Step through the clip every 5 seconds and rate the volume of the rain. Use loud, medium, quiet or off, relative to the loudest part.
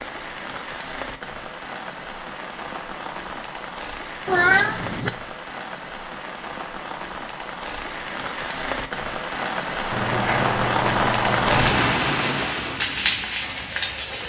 medium, medium, loud.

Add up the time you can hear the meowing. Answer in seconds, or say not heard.
3 s.